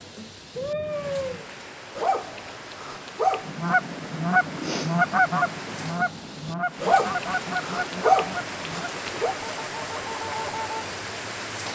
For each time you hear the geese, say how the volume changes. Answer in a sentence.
The geese can be heard from 3.5 to 10.8 s, getting quieter.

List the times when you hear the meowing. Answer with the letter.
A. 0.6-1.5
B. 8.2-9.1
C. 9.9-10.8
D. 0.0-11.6
A.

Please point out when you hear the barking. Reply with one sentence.
You can hear the barking from 1.9 to 3.5 s and from 6.8 to 9.3 s.